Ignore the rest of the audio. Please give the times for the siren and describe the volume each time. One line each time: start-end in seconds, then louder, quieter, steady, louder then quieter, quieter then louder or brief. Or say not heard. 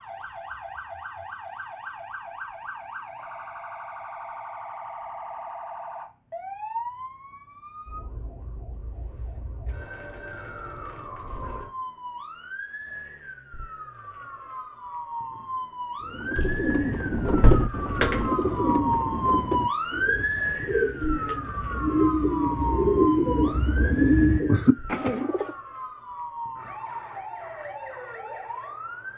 0.0-29.1 louder then quieter.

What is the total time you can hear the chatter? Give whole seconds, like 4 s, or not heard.
not heard.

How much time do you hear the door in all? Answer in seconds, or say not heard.
2 s.